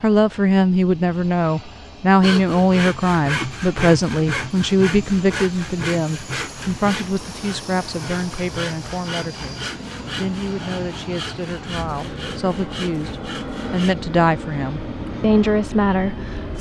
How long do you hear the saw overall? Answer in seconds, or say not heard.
12 s.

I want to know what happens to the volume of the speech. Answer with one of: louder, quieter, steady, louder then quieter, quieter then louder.
quieter then louder.